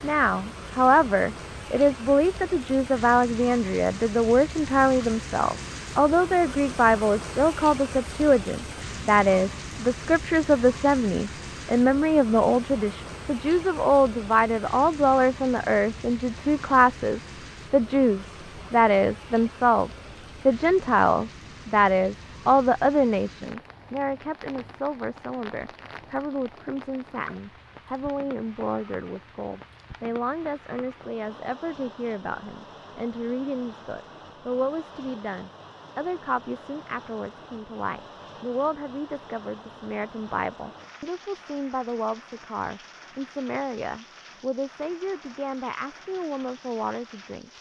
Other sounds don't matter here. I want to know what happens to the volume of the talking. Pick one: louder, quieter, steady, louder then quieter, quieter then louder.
quieter.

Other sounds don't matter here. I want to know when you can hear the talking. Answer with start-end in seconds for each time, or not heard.
0.0-47.5.